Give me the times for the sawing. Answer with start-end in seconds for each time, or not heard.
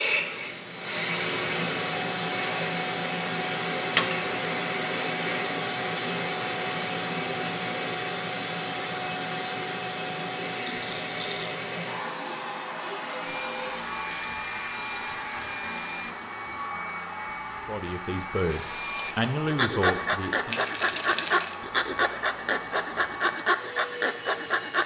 13.2-16.1, 18.4-24.8.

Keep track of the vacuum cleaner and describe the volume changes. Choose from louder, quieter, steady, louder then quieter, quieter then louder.
quieter.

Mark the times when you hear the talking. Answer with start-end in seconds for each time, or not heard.
17.6-20.6.